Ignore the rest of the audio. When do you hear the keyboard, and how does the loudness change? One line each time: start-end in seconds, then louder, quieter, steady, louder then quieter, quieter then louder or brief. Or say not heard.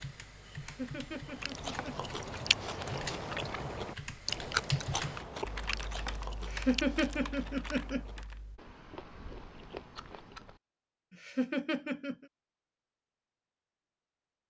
0.0-8.6 louder then quieter.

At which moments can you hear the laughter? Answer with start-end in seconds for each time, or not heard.
0.6-1.9, 6.4-8.0, 11.1-12.2.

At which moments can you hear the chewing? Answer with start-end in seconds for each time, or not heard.
1.1-10.6.